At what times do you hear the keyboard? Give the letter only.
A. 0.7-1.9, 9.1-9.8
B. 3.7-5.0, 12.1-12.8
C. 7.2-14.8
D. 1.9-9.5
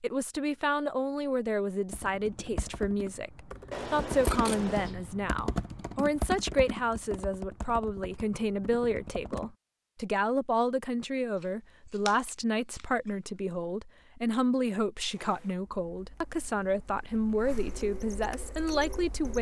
D.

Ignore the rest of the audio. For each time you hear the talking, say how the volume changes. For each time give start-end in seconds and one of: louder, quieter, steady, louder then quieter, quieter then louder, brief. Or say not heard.
0.0-19.3 steady.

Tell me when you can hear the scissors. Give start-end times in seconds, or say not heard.
3.7-5.0, 12.1-12.8.